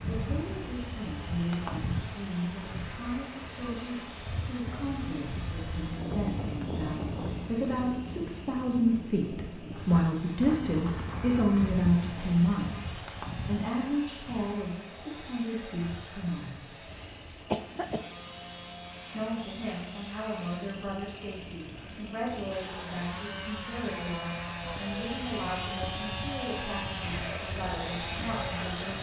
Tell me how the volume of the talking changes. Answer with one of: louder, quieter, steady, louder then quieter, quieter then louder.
louder then quieter.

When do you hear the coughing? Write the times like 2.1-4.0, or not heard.
17.5-18.1.